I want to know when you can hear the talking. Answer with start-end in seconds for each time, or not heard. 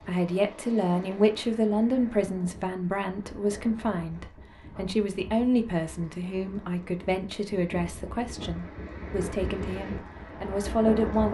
0.1-11.2.